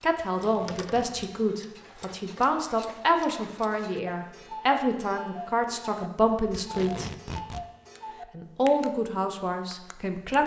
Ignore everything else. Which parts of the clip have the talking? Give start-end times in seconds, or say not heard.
0.0-7.1, 8.3-10.4.